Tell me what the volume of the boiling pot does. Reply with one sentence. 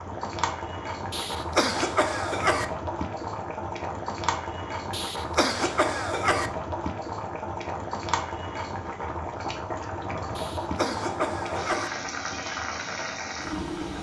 The loudness of the boiling pot stays about the same.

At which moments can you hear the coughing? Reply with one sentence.
The coughing can be heard from 1.1 to 2.6 s, from 4.9 to 6.5 s and from 10.3 to 11.9 s.